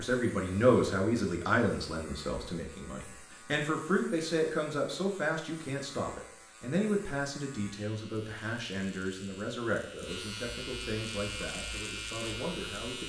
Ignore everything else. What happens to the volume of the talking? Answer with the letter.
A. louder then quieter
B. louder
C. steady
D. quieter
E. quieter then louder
D.